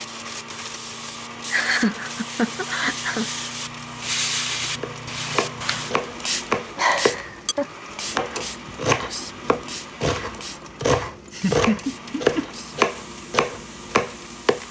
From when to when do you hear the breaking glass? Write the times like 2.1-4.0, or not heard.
not heard.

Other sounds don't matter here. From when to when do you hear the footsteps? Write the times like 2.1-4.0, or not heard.
not heard.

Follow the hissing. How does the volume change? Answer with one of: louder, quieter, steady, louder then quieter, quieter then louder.
louder then quieter.